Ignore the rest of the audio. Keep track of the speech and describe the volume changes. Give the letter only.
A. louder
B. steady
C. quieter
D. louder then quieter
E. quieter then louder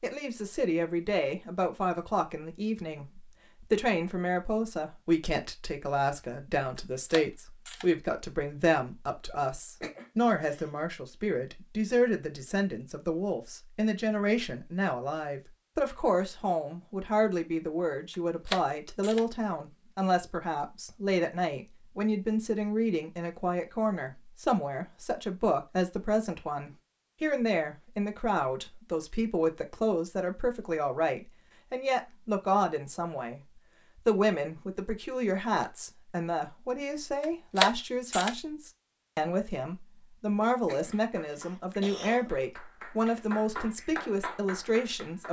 B.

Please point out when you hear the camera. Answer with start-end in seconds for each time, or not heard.
6.8-7.8, 18.1-19.2, 37.2-38.4.